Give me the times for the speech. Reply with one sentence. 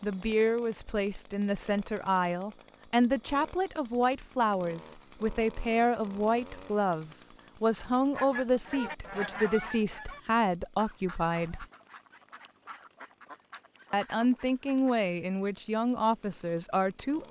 The speech can be heard from 0.0 to 11.7 s and from 13.9 to 17.2 s.